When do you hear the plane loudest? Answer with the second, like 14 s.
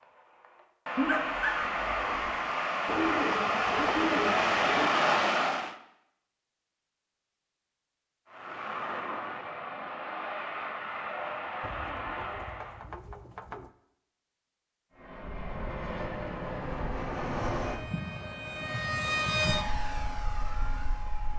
5 s.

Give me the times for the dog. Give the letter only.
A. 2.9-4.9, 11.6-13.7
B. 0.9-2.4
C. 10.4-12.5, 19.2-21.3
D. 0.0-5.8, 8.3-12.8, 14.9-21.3
B.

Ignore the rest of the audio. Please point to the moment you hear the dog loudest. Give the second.
1 s.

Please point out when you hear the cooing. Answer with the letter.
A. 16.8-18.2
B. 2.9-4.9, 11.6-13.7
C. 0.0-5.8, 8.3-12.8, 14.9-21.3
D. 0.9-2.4
B.